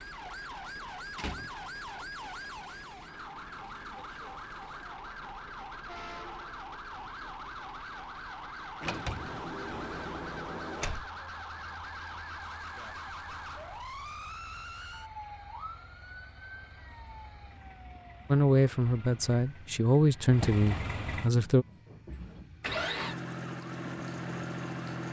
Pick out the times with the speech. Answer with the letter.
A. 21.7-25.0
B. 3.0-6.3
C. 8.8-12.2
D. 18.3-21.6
D.